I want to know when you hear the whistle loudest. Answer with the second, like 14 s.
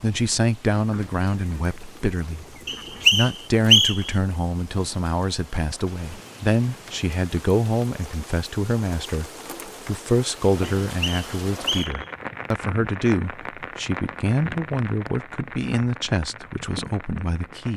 4 s.